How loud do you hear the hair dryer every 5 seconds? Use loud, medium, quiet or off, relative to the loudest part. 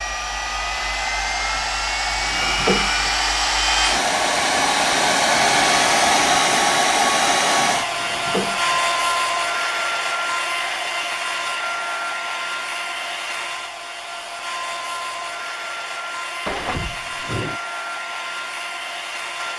loud, loud, medium, medium.